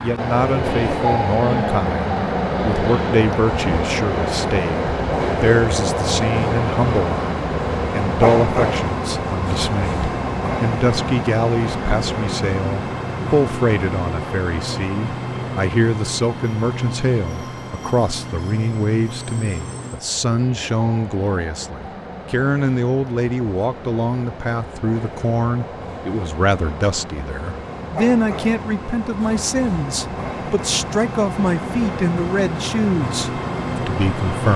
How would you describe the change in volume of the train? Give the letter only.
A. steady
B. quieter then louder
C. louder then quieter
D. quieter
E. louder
B.